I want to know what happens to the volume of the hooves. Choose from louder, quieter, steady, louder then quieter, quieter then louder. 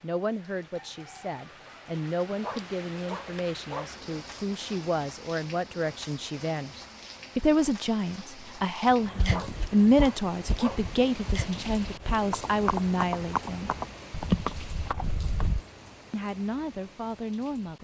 louder.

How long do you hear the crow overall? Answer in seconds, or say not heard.
not heard.